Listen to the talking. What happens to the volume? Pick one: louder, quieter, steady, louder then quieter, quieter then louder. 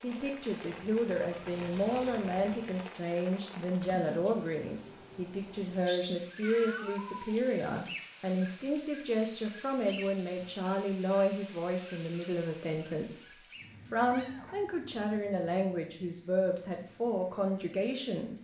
steady.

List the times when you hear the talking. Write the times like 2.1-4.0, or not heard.
0.0-18.4.